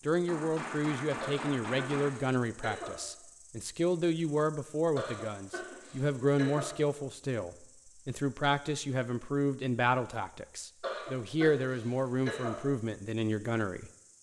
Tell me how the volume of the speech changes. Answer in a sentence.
The volume of the speech stays about the same.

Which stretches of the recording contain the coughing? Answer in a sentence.
You can hear the coughing from 1.2 to 3.0 s, from 5.0 to 6.8 s and from 10.8 to 12.7 s.